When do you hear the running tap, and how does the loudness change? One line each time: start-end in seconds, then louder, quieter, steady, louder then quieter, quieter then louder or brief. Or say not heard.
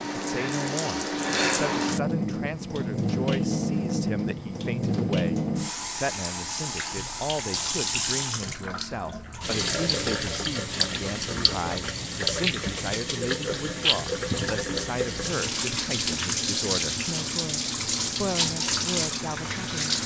0.0-20.0 steady.